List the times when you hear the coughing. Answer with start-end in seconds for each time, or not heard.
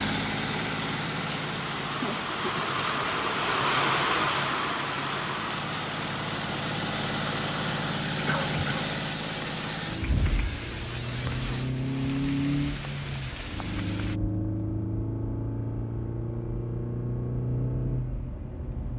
8.2-8.8.